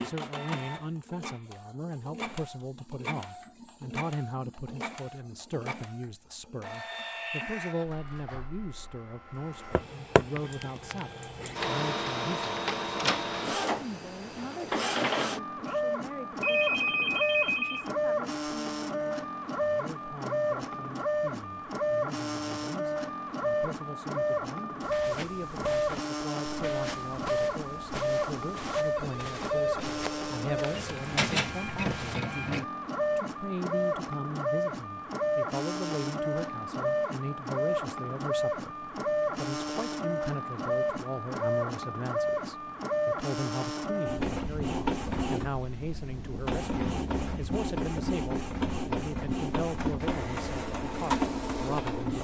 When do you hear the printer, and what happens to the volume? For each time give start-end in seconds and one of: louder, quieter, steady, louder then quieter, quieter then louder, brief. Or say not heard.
0.0-52.1 louder.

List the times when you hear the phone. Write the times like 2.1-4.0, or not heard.
16.4-17.9, 28.9-30.8.